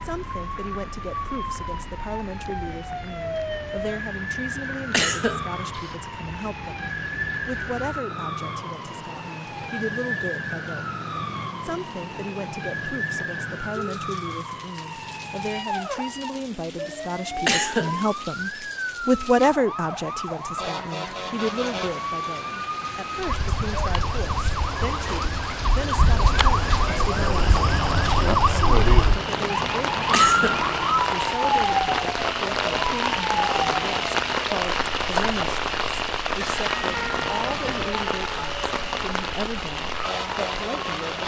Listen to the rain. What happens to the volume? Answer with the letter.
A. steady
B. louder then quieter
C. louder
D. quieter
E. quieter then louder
C.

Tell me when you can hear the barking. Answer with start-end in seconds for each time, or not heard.
not heard.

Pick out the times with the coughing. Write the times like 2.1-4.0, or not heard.
4.9-5.9, 17.4-18.4, 30.1-30.6.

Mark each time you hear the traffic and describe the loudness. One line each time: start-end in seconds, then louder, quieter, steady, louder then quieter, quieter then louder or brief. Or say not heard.
not heard.